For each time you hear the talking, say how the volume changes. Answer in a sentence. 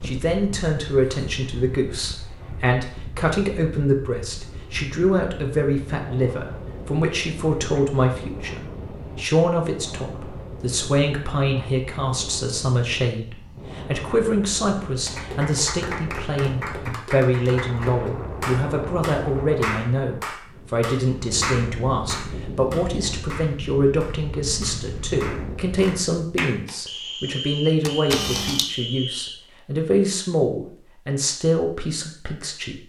You can hear the talking from 0.0 to 32.8 s, at a steady volume.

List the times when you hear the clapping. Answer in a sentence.
The clapping can be heard from 15.1 to 26.8 s.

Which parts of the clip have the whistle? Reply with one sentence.
You can hear the whistle from 26.9 to 29.4 s.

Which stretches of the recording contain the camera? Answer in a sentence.
You can hear the camera from 27.9 to 28.6 s.